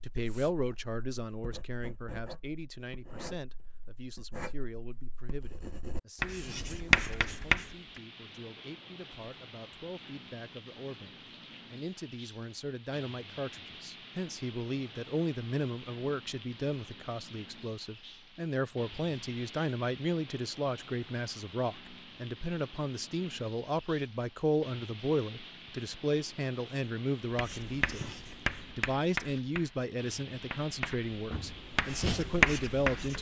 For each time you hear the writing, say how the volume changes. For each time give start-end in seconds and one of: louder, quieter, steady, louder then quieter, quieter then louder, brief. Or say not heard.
0.1-8.0 louder
27.4-33.1 quieter then louder.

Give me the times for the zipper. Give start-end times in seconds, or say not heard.
not heard.